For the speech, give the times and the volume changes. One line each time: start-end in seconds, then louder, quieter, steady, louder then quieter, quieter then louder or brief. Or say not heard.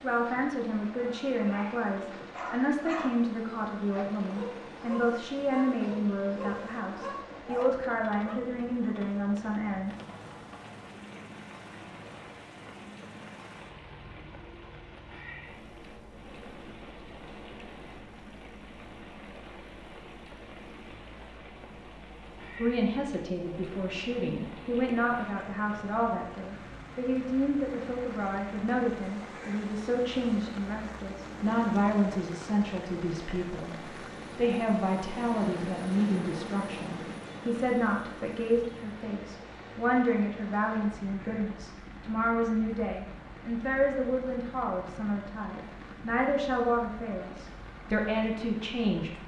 0.0-9.9 steady
22.6-49.2 steady.